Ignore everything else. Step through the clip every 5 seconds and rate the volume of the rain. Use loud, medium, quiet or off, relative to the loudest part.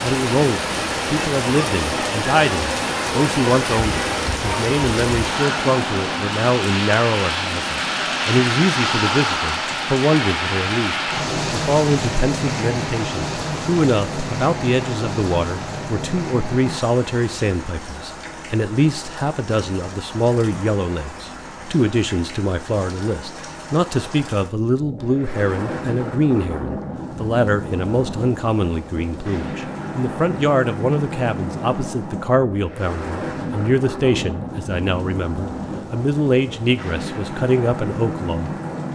loud, loud, loud, medium, quiet, medium, medium, medium.